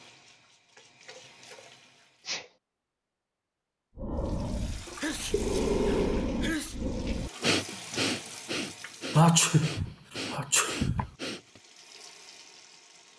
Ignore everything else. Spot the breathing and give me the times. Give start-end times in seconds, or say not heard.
4.0-11.6.